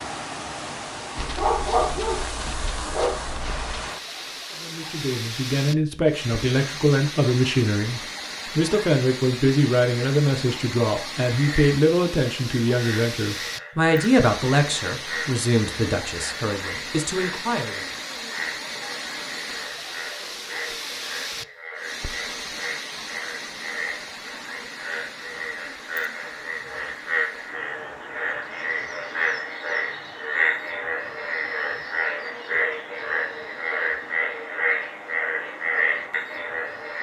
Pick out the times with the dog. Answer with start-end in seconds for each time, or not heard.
1.1-3.7.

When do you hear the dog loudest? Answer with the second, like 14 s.
2 s.